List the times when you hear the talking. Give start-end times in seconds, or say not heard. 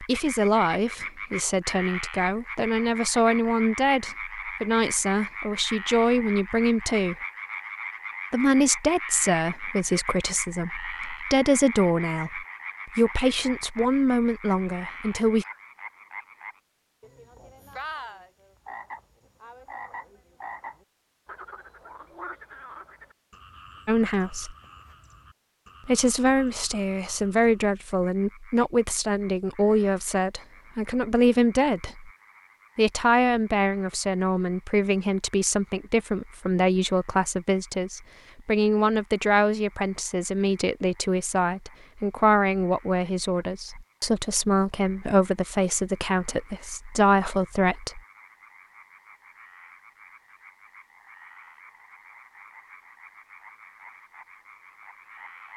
0.0-7.2, 8.3-15.4, 23.9-24.6, 25.9-32.1, 32.8-48.0.